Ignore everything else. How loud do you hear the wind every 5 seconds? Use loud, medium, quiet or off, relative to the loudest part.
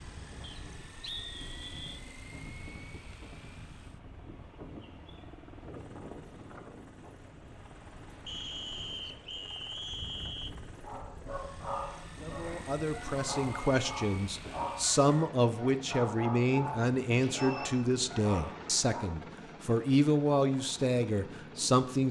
loud, loud, loud, off, off.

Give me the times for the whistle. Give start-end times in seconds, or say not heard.
0.4-2.0, 8.2-10.5, 17.4-17.9.